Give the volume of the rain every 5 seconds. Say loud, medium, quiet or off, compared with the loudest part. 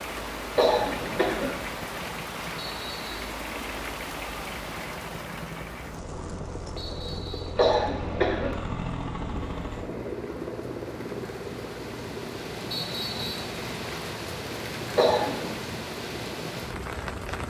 loud, medium, loud, loud.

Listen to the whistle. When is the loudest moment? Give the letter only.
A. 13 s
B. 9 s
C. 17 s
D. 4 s
A.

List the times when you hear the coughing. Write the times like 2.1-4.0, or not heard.
0.6-1.6, 7.5-8.6, 14.9-15.6.